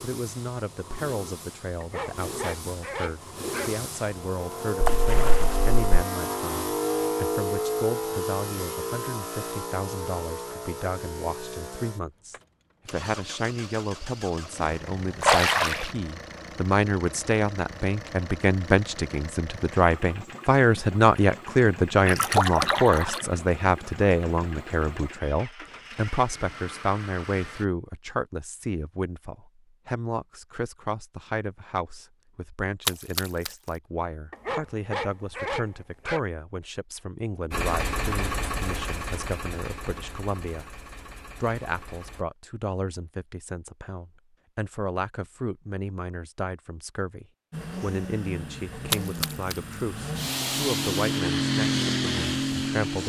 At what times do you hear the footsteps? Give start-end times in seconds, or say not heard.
not heard.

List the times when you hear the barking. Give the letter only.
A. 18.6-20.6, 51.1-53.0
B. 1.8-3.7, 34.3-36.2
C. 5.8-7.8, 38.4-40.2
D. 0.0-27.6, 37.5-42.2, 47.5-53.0
B.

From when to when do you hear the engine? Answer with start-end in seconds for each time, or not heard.
0.0-27.6, 37.5-42.2, 47.5-53.0.